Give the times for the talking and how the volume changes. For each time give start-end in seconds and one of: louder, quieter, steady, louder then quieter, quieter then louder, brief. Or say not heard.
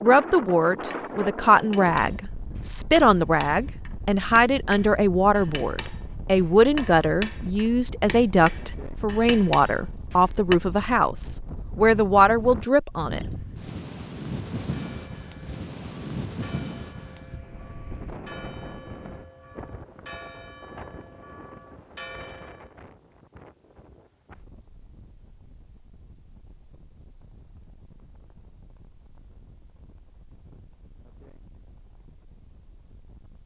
0.0-13.2 steady.